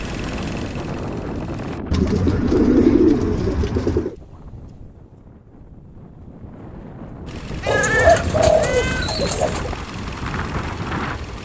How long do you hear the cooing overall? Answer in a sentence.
The cooing can be heard for 4 seconds in total.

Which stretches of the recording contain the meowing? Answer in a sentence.
You can hear the meowing from 7.6 to 9.1 s.